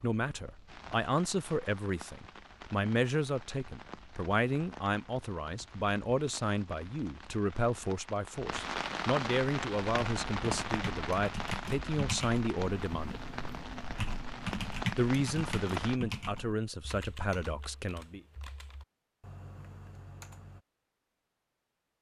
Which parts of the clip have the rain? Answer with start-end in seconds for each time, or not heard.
0.0-16.0.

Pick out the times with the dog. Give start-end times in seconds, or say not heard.
not heard.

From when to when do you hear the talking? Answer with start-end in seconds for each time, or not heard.
0.0-13.2, 14.9-18.2.